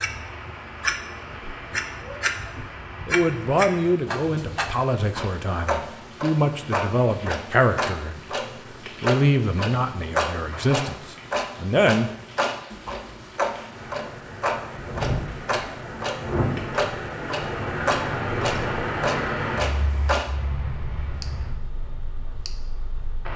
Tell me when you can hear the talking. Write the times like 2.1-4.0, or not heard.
3.0-8.3, 9.0-12.1.